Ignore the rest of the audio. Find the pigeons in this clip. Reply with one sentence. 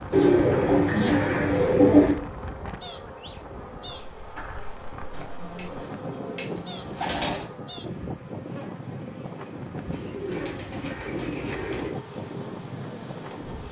You can hear the pigeons from 0.1 to 2.1 s, from 5.1 to 7.5 s and from 9.9 to 11.9 s.